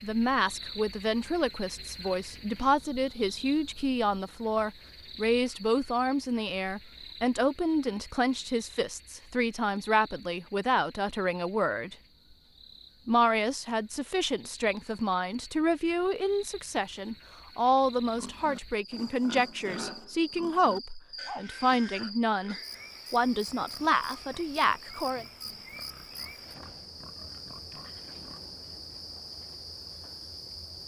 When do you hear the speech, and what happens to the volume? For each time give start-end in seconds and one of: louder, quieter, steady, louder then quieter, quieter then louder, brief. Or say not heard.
0.0-11.9 steady
13.1-25.2 steady.